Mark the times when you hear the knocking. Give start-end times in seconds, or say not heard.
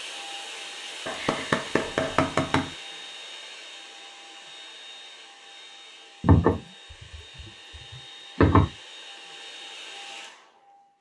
1.1-2.7, 6.2-8.7.